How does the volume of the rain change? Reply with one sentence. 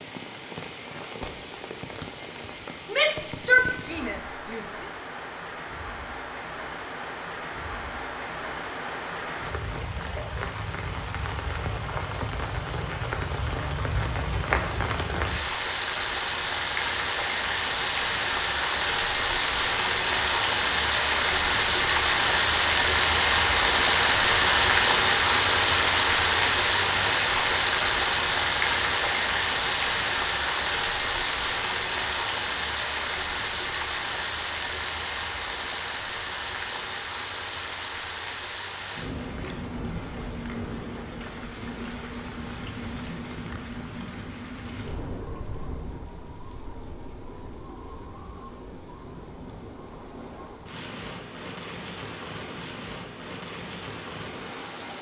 The volume of the rain goes up, then down.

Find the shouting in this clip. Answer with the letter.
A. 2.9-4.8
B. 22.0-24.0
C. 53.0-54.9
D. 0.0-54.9
A.